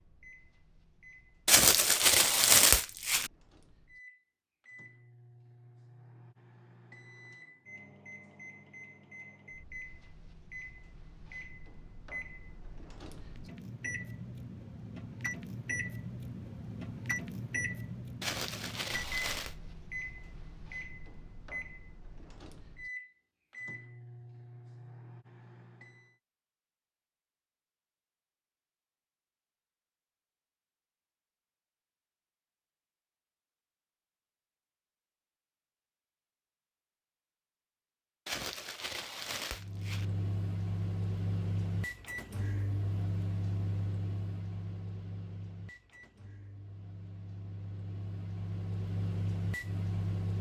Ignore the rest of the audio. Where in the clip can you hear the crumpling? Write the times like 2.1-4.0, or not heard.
1.4-3.3, 18.2-19.6, 38.2-40.0.